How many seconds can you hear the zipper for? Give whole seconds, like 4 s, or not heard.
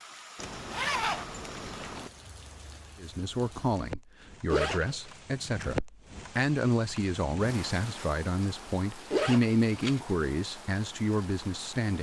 3 s.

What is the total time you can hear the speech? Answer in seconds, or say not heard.
9 s.